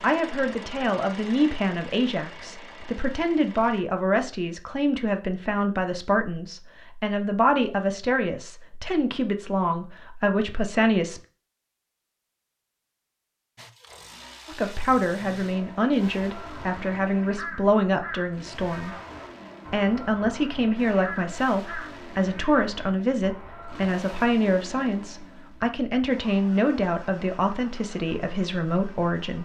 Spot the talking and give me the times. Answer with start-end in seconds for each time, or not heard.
0.0-11.2, 14.4-18.9, 19.7-29.4.